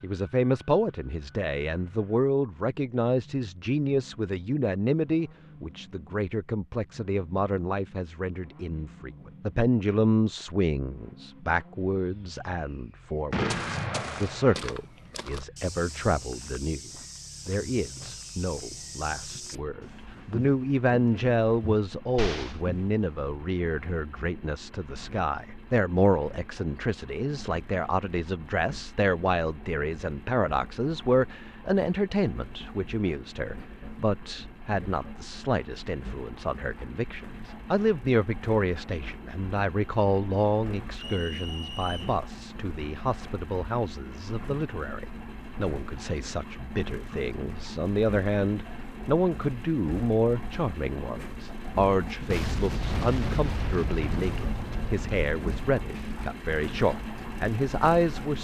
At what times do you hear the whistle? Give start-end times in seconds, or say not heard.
41.0-42.2.